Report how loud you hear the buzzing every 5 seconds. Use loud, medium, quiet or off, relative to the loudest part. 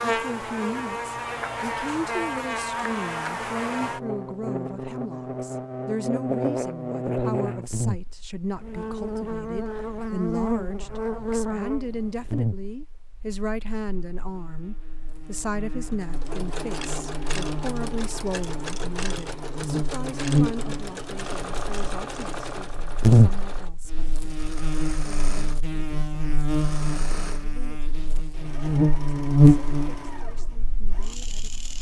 medium, medium, medium, quiet, loud, loud, quiet.